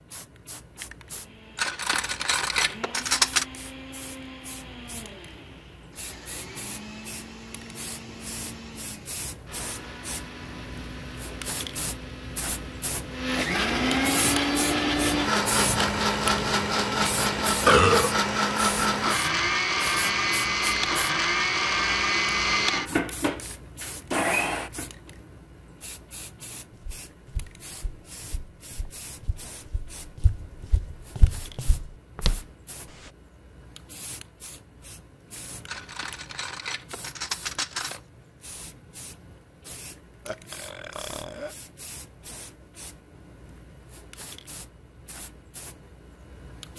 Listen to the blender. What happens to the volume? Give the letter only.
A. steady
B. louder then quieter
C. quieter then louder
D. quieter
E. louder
E.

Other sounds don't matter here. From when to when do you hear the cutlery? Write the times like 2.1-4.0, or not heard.
1.6-3.5, 35.6-38.0.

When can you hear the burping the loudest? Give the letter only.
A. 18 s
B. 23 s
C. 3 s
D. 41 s
A.